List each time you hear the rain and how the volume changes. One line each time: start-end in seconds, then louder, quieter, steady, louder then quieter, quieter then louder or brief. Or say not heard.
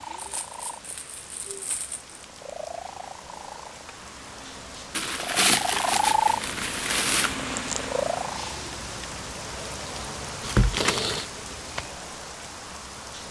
0.0-13.2 louder.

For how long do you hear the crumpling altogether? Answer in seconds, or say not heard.
5 s.